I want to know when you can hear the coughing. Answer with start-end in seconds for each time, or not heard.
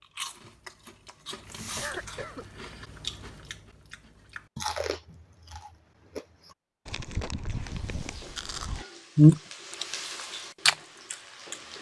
1.8-2.5.